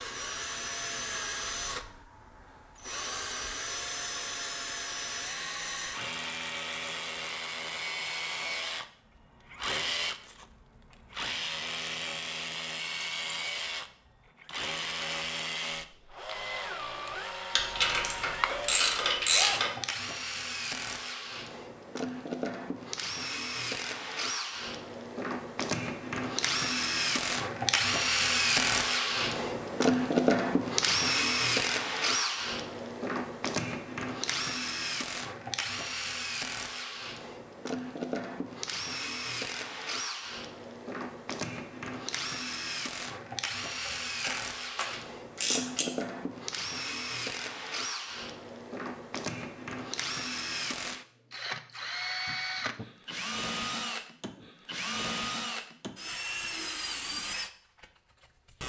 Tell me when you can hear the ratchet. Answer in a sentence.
The ratchet can be heard from 17.6 to 19.7 s and from 44.2 to 45.9 s.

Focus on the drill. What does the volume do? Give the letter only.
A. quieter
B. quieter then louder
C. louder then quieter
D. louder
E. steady
C.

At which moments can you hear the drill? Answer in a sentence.
You can hear the drill from 0.0 to 58.6 s.